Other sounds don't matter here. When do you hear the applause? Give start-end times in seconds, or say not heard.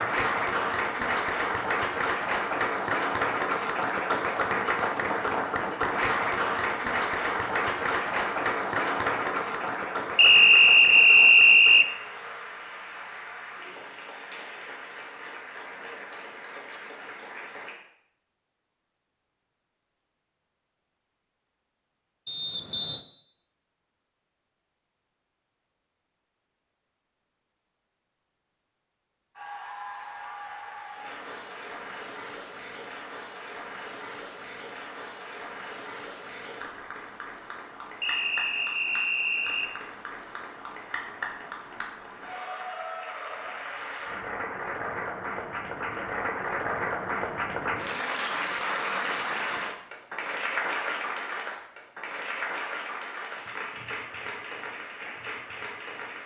0.0-17.8, 29.4-56.2.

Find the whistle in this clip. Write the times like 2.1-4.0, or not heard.
10.2-11.9, 22.2-23.1, 38.0-39.7.